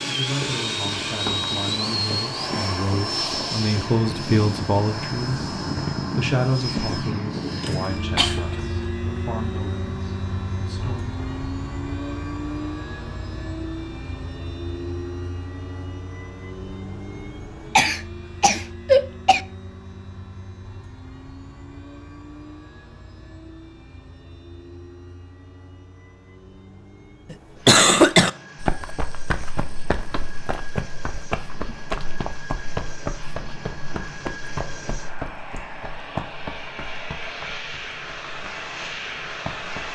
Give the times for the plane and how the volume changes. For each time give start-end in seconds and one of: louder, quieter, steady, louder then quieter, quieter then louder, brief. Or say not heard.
0.0-39.9 quieter then louder.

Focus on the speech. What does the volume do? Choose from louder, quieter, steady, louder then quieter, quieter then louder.
louder then quieter.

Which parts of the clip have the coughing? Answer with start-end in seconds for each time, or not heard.
7.7-8.4, 17.8-19.4, 27.3-28.3.